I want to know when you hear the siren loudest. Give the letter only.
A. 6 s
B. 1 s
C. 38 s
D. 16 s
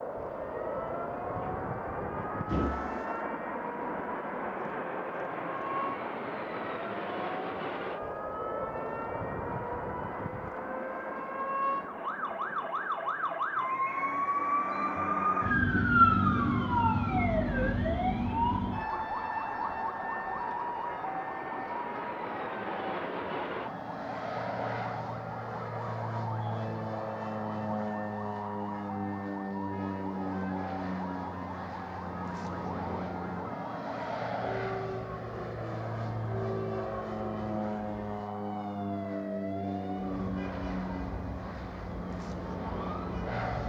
D.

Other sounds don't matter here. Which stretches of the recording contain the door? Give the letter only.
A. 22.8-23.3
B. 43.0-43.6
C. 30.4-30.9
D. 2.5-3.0
D.